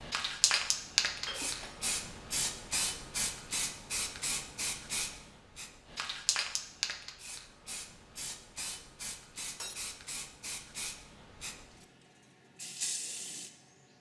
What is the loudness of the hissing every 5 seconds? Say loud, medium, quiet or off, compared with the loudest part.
loud, medium, medium.